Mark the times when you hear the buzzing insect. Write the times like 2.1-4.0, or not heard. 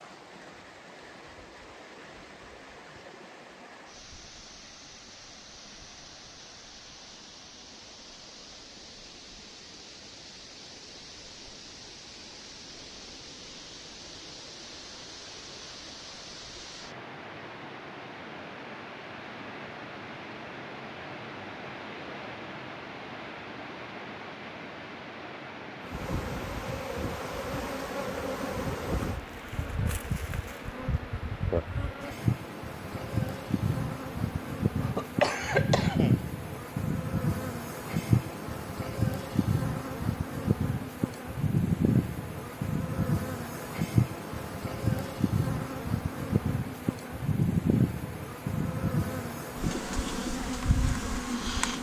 25.8-51.7.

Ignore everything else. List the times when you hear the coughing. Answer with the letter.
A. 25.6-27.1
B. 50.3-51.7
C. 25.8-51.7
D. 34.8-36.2
D.